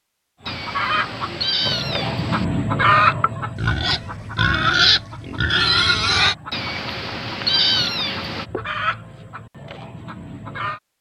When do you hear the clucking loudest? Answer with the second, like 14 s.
3 s.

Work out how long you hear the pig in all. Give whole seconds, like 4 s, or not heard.
3 s.